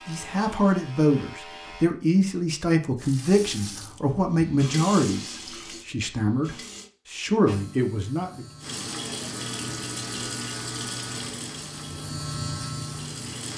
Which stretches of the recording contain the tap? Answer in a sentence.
You can hear the tap from 3.0 to 6.9 s and from 8.6 to 13.5 s.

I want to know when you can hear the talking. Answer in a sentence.
The talking can be heard from 0.1 to 8.4 s.